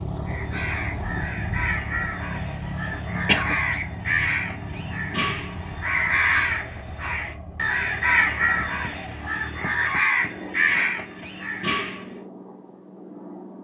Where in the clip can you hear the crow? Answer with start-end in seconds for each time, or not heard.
0.2-12.2.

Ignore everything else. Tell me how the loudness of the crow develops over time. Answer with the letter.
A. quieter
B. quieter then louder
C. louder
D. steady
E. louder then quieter
C.